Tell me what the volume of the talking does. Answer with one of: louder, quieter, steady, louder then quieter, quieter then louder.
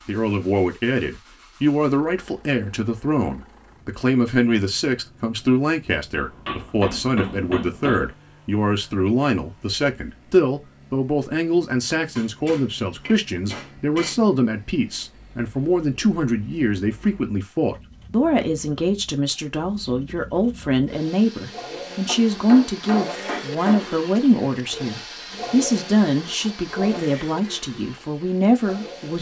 steady.